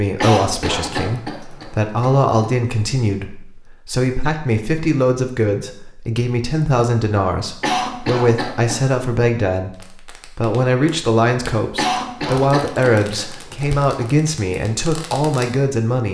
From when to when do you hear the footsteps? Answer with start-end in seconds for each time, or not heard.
not heard.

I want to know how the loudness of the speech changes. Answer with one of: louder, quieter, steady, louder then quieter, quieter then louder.
steady.